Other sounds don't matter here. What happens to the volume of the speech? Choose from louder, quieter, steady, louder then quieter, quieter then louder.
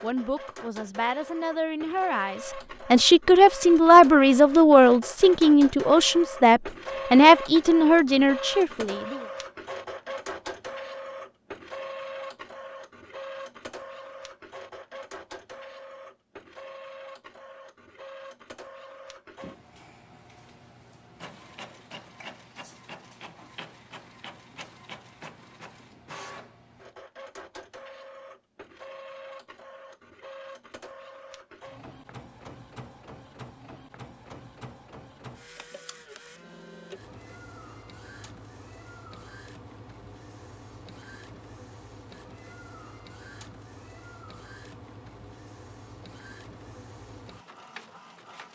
louder.